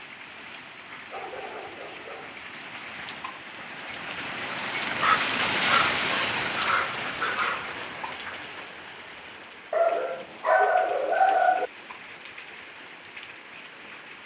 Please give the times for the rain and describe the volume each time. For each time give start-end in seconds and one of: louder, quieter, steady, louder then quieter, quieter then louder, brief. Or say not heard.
0.0-14.2 louder then quieter.